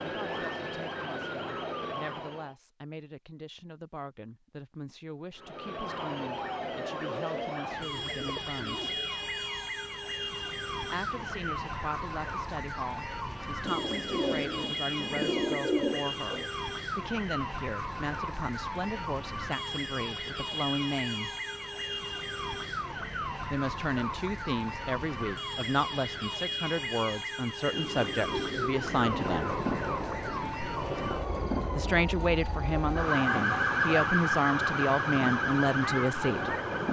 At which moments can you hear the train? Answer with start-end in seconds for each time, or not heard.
29.0-36.8.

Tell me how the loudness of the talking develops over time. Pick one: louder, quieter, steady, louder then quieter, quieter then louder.
louder.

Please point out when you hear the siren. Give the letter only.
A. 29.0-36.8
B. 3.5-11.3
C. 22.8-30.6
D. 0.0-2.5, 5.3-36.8
D.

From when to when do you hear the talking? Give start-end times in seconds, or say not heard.
0.0-8.8, 10.9-21.3, 23.5-29.6, 31.8-36.5.